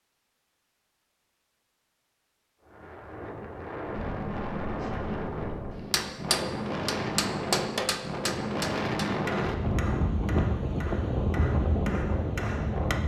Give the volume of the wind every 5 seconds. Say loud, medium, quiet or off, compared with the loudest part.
medium, loud, loud.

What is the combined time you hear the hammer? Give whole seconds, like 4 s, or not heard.
7 s.